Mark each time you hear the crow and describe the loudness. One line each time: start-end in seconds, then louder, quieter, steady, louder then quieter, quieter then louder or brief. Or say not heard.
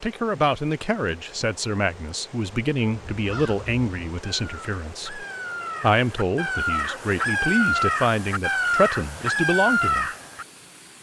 2.9-10.4 louder.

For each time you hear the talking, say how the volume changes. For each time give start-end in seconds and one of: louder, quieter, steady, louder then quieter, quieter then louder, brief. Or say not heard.
0.0-10.1 steady.